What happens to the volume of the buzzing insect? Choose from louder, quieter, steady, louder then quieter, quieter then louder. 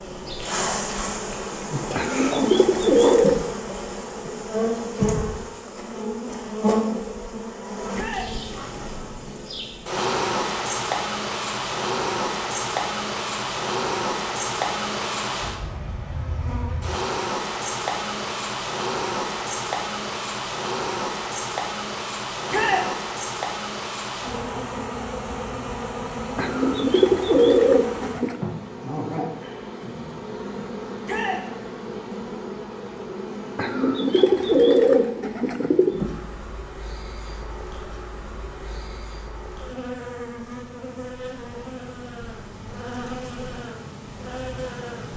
quieter.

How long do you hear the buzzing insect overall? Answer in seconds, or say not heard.
45 s.